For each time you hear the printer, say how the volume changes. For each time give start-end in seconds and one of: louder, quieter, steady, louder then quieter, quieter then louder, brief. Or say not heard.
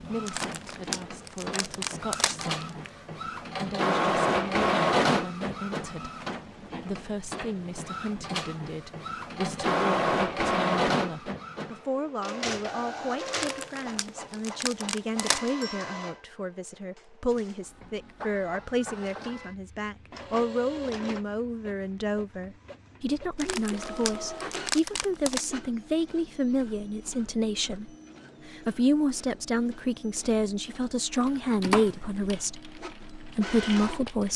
0.0-34.2 quieter.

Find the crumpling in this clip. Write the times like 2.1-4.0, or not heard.
0.2-2.9, 13.3-15.5, 23.4-25.4.